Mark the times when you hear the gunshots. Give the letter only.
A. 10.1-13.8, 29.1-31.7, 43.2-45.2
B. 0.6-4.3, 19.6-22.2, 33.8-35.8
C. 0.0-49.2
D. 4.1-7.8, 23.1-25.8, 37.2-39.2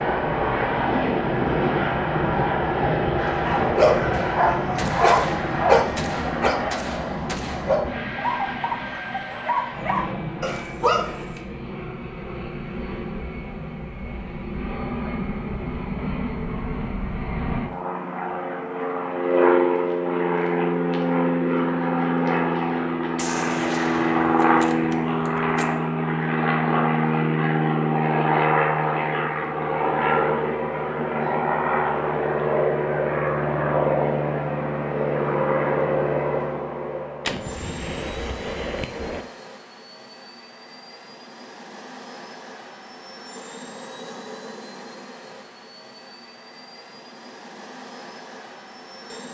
D.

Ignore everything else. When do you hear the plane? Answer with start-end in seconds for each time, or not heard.
0.0-49.2.